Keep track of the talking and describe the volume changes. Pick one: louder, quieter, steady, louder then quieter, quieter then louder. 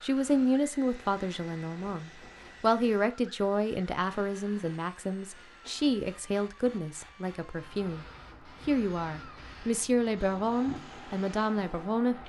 steady.